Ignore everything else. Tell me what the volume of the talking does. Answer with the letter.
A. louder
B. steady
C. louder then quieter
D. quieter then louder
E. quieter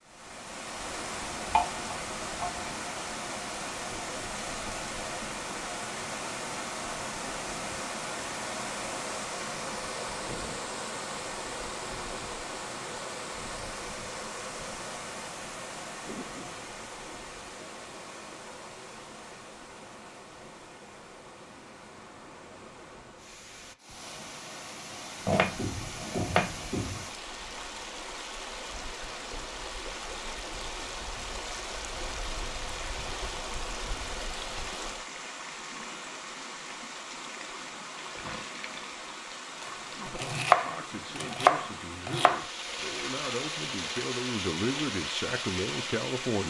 A.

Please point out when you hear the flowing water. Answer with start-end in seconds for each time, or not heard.
0.0-46.4.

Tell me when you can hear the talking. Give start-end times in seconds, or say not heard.
39.8-46.4.